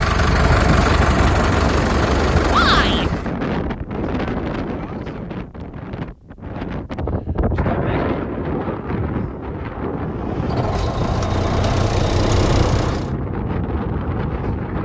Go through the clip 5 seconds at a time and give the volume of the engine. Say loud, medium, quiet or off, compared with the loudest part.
loud, off, loud.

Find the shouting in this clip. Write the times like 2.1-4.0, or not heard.
2.5-3.0.